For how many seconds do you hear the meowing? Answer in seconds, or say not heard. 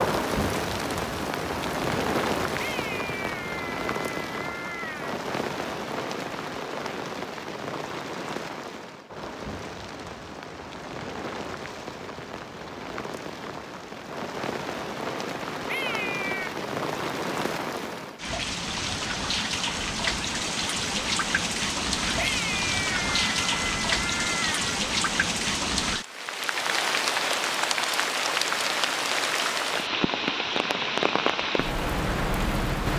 6 s.